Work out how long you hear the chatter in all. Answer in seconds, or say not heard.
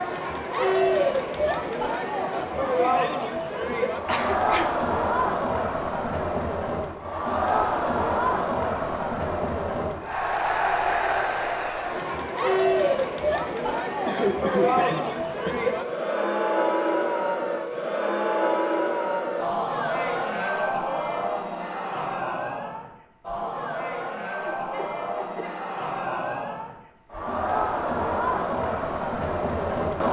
30 s.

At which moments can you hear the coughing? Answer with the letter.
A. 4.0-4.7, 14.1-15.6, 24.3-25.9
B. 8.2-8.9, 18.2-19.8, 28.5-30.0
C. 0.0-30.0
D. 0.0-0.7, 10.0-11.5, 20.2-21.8
A.